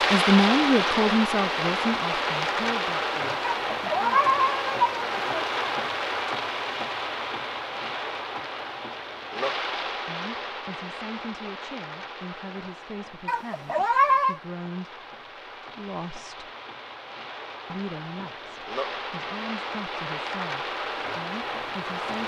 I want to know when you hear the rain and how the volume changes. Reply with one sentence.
You can hear the rain from 0.0 to 22.2 s, getting quieter then louder.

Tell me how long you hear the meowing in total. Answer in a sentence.
The meowing can be heard for 3 seconds in total.